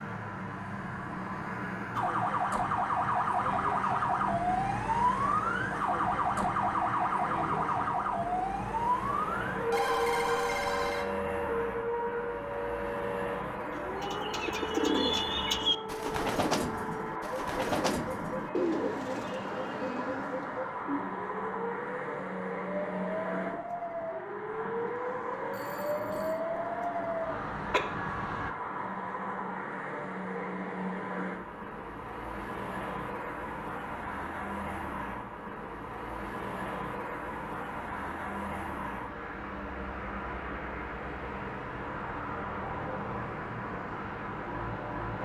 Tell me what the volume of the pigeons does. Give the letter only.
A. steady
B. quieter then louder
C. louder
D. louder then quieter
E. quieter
E.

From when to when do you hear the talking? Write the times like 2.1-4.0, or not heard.
not heard.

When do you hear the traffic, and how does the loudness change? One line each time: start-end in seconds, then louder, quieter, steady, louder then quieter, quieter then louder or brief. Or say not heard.
0.0-45.1 steady.